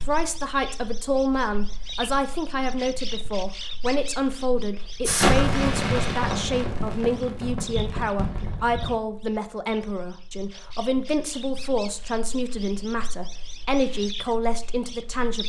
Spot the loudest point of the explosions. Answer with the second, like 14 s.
5 s.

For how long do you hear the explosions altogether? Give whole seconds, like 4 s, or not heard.
4 s.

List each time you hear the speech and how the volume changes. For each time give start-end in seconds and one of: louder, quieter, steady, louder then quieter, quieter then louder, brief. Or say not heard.
0.1-15.4 steady.